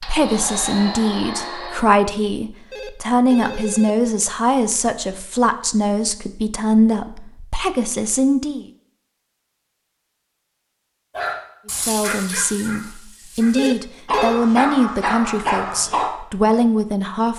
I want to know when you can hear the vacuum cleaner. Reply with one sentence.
The vacuum cleaner can be heard from 0.0 to 1.8 s.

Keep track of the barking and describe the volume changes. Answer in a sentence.
The volume of the barking goes down, then up.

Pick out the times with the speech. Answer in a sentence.
You can hear the speech from 0.0 to 8.7 s and from 11.7 to 17.3 s.